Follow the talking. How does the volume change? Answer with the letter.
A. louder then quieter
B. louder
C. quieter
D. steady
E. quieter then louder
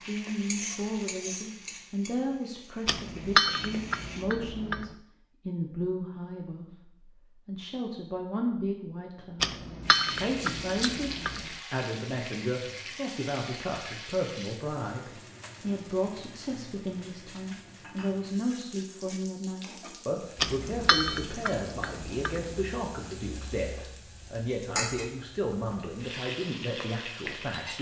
D.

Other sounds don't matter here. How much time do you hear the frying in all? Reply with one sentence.
The frying can be heard for 22 seconds in total.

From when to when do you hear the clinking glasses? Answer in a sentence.
The clinking glasses can be heard from 2.9 to 5.0 s, from 9.4 to 11.5 s and from 20.4 to 22.6 s.